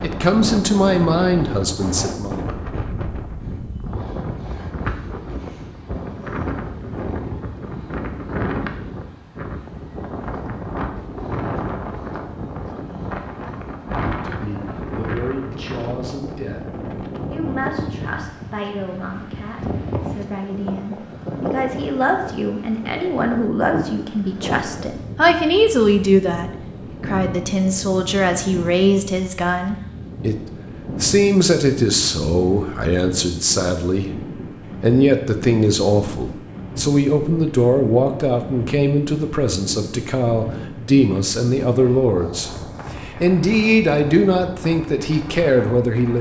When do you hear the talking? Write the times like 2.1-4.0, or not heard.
0.0-2.5, 14.1-30.4, 31.0-34.1, 34.8-46.1.